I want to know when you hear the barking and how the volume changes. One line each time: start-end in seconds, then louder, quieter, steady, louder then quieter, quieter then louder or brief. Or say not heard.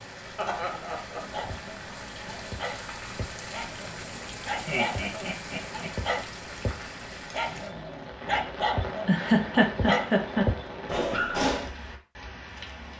1.3-11.7 louder.